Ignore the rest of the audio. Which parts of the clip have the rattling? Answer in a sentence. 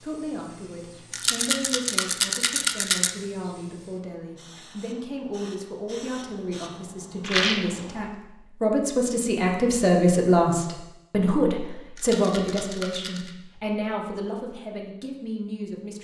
You can hear the rattling from 1.1 to 3.1 s, from 7.2 to 7.8 s and from 11.9 to 13.3 s.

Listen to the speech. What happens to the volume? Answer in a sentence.
The loudness of the speech goes up, then down.